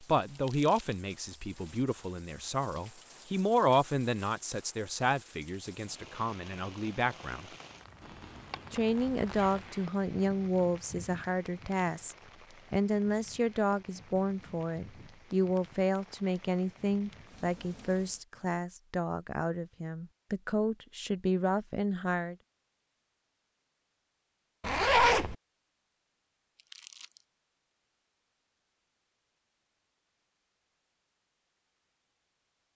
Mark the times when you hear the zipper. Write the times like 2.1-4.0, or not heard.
8.0-9.9, 24.6-25.4.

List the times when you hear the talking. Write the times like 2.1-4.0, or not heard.
0.0-7.5, 8.7-22.4.